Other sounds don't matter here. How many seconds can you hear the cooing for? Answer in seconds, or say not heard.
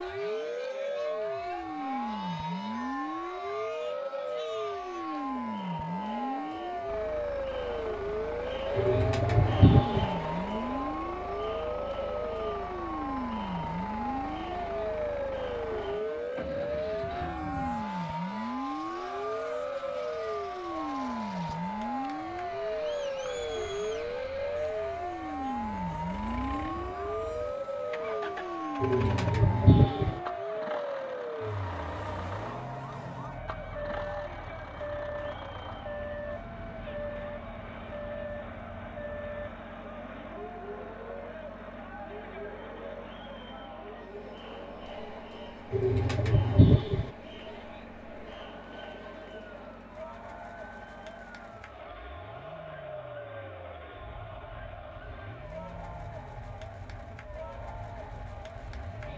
4 s.